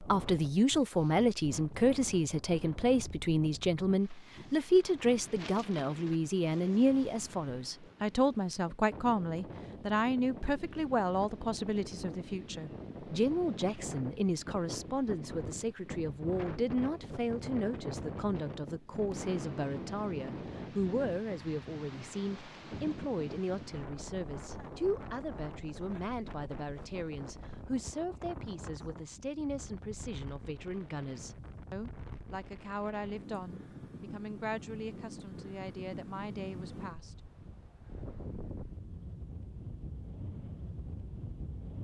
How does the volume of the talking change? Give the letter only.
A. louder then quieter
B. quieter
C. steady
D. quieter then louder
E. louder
B.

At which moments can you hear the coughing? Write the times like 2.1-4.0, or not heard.
not heard.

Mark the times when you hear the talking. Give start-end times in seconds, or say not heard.
0.0-37.2.